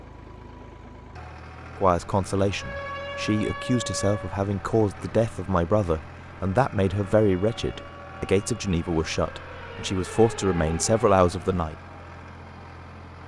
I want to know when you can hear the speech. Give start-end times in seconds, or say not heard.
1.8-11.8.